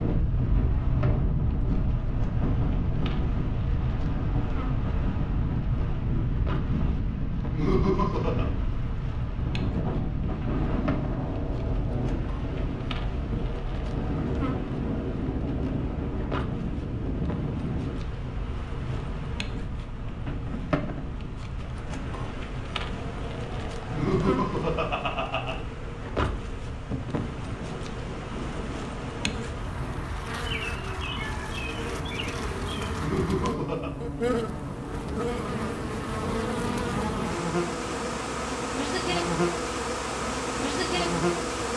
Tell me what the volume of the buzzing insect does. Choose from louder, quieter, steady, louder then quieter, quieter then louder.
louder.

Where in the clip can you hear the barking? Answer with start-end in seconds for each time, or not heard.
not heard.